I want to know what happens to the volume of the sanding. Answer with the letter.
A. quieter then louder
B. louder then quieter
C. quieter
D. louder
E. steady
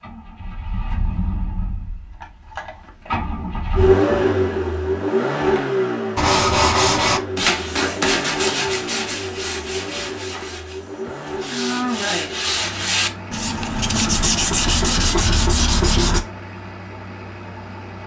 A.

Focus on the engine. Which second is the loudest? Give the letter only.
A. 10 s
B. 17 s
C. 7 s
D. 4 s
D.